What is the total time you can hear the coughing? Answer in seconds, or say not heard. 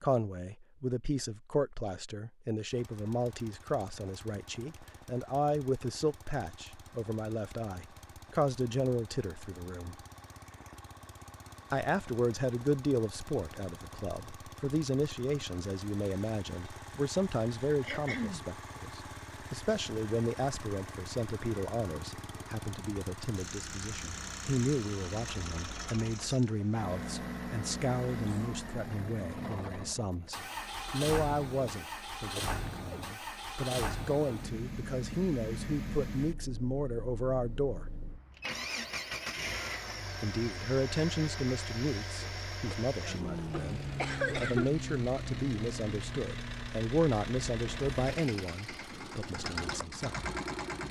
2 s.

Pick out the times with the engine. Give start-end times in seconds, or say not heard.
2.7-50.8.